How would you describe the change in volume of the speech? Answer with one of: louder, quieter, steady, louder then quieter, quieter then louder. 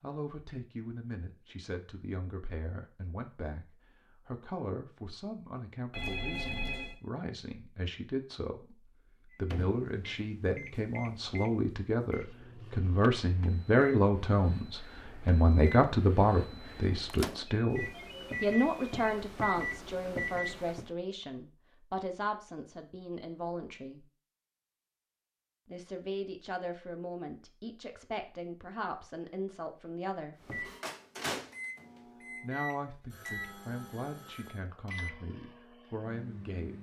louder then quieter.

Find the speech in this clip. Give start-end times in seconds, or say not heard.
0.0-24.1, 25.6-30.4, 32.4-36.7.